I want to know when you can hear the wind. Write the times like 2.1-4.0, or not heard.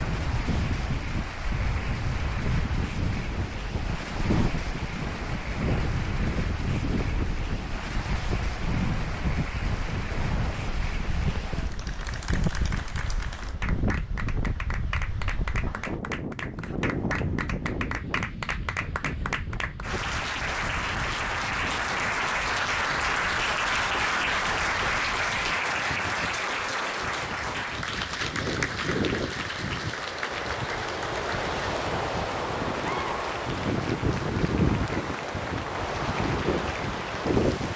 0.0-37.7.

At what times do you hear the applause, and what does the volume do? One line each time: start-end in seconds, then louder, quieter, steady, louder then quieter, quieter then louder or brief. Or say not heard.
0.0-37.7 louder then quieter.